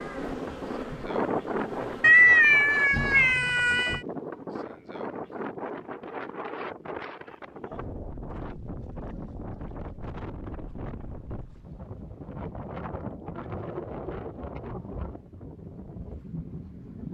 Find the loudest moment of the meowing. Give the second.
2 s.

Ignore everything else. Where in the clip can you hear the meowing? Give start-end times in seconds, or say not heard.
2.0-4.0.